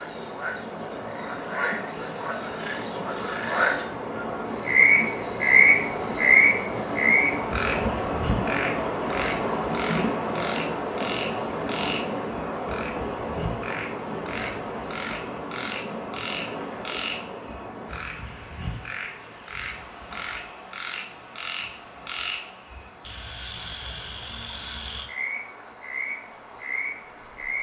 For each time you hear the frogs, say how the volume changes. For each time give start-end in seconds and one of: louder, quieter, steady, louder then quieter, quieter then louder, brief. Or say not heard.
0.0-27.5 quieter.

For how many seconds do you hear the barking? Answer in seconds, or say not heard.
not heard.